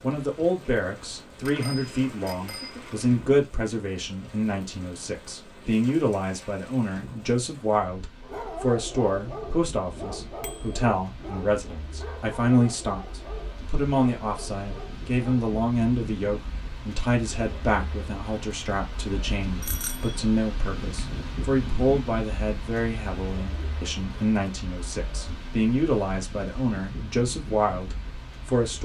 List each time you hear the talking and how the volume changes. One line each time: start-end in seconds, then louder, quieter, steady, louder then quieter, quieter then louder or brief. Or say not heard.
0.0-28.8 steady.